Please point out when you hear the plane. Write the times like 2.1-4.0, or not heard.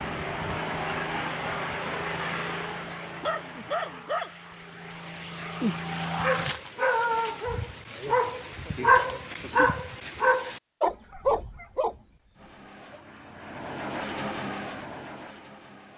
0.0-6.5, 12.3-15.9.